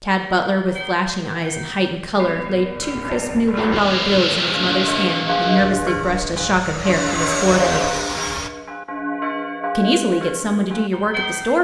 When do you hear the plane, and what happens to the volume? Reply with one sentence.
You can hear the plane from 3.5 to 8.5 s, getting quieter then louder.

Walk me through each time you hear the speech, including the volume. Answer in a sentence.
The speech can be heard from 0.0 to 8.0 s, at a steady volume; and briefly from 9.8 to 11.5 s.